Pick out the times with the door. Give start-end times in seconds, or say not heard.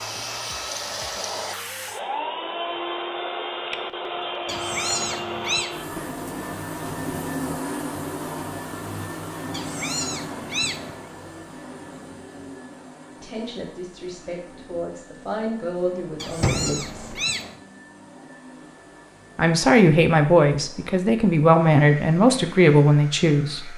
15.9-16.9.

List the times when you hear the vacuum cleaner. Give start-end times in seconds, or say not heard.
0.0-23.7.